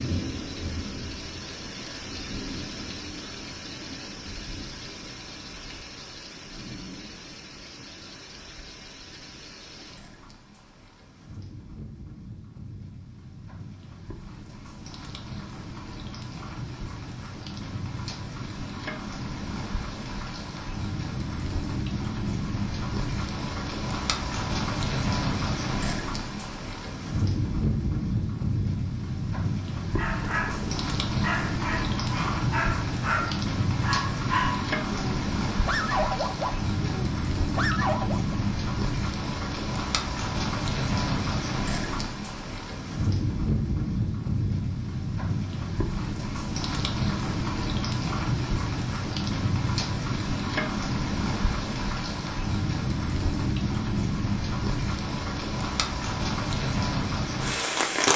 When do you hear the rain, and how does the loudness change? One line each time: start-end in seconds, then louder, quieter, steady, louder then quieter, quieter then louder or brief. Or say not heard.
0.0-58.1 louder.